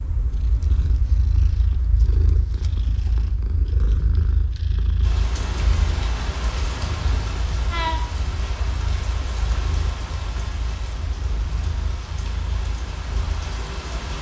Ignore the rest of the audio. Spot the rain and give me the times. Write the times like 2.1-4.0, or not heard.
5.0-14.1.